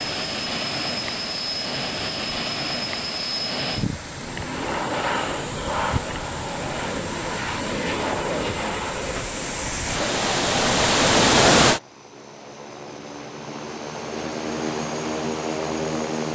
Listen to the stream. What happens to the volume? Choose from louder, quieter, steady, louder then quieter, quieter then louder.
louder.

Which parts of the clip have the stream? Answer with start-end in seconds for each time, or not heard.
0.0-11.8.